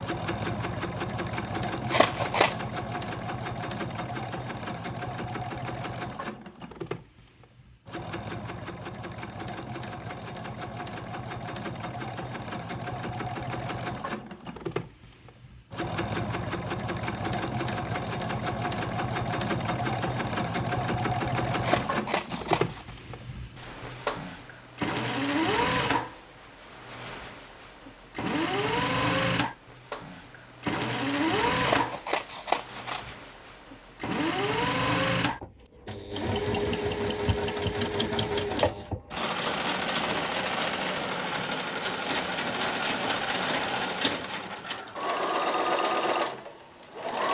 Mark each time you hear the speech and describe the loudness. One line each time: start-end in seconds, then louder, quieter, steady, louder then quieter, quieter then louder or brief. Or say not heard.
not heard.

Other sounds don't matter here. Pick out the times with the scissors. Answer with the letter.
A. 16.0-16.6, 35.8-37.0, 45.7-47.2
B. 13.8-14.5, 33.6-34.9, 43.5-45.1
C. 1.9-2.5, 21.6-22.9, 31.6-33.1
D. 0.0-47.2
C.